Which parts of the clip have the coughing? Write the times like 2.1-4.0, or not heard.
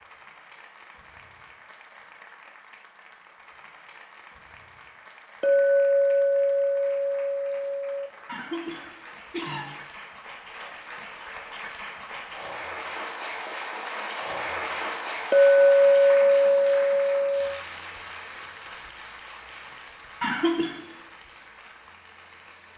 8.2-9.7, 20.2-20.8.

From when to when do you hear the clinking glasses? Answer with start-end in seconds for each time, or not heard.
5.4-8.1, 15.3-17.6.